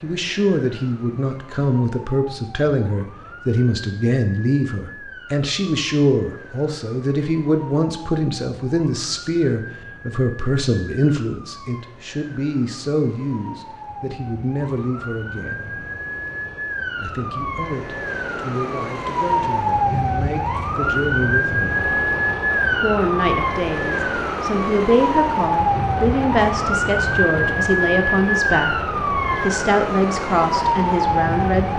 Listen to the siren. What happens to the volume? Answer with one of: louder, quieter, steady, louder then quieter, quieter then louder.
louder.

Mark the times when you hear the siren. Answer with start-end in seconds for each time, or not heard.
0.0-31.7.